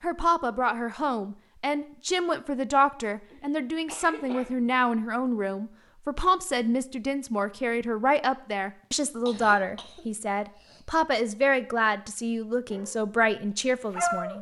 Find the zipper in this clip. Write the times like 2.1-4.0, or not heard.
not heard.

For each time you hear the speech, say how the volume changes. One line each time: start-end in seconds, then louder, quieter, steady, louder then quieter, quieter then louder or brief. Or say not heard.
0.0-14.3 steady.